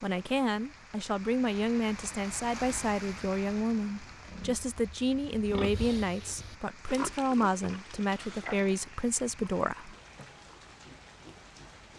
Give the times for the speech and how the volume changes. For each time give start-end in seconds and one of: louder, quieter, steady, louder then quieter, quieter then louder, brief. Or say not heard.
0.0-9.9 steady.